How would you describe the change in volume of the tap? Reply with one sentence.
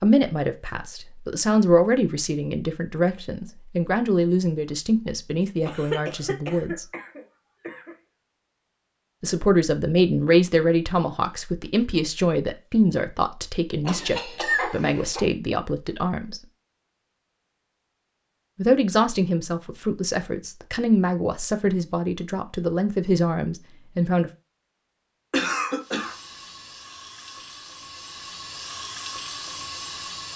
The loudness of the tap goes up.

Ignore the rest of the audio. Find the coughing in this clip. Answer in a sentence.
The coughing can be heard from 5.7 to 8.0 s, from 13.8 to 15.3 s and from 25.3 to 26.1 s.